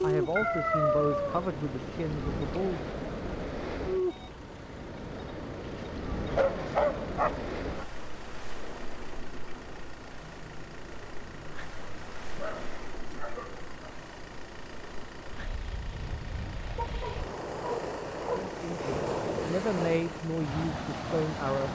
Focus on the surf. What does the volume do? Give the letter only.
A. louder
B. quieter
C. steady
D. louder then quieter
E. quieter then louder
E.